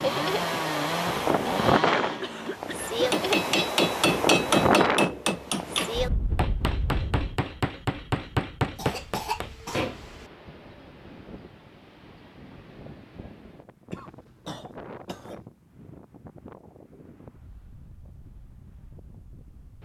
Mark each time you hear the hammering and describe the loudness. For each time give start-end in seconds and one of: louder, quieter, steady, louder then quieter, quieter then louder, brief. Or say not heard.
3.1-10.0 quieter.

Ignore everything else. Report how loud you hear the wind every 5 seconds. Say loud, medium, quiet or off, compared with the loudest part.
loud, medium, quiet, quiet.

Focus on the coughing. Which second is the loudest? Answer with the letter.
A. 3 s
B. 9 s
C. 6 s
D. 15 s
B.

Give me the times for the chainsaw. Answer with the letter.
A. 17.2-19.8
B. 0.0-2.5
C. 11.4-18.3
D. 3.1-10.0
B.